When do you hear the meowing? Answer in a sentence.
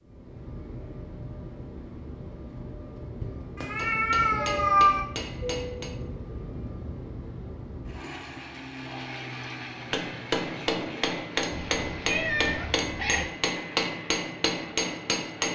You can hear the meowing from 3.5 to 5.0 s and from 11.5 to 13.3 s.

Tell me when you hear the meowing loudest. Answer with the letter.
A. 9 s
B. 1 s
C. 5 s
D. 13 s
C.